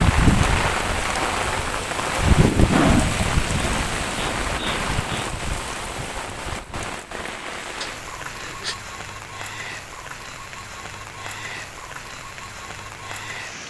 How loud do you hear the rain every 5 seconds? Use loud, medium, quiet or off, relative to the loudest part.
loud, medium, quiet.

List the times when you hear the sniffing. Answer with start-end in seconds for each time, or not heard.
2.7-5.2, 7.8-8.8.